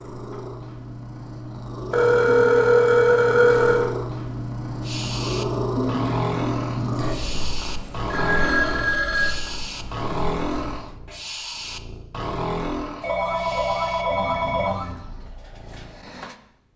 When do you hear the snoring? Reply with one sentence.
The snoring can be heard from 4.8 to 16.4 s.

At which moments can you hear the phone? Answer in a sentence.
The phone can be heard from 1.9 to 3.9 s, from 8.1 to 9.4 s and from 13.0 to 14.9 s.